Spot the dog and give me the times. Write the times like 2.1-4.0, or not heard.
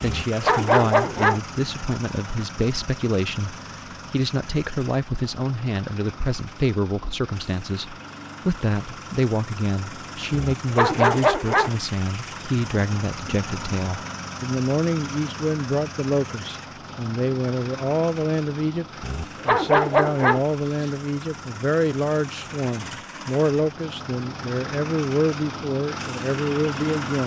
0.0-1.4, 10.3-11.7, 19.0-20.9.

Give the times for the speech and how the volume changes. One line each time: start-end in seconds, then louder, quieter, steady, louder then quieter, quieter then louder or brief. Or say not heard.
0.0-18.9 steady
19.4-27.2 steady.